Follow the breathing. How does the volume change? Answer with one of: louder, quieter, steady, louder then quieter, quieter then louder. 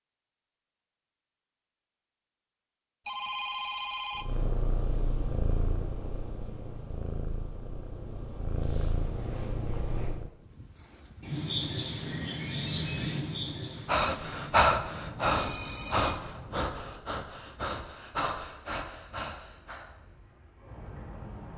quieter.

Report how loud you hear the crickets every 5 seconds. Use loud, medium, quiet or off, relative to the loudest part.
off, off, loud, quiet, quiet.